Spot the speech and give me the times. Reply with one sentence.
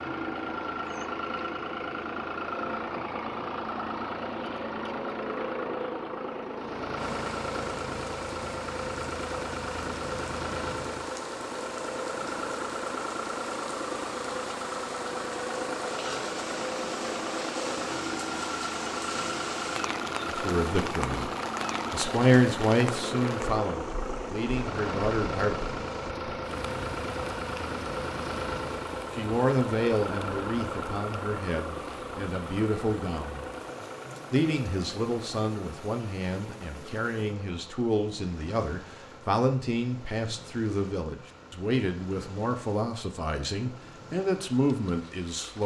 You can hear the speech from 20.2 to 21.3 s, from 21.9 to 25.7 s, from 29.1 to 33.5 s and from 34.3 to 45.6 s.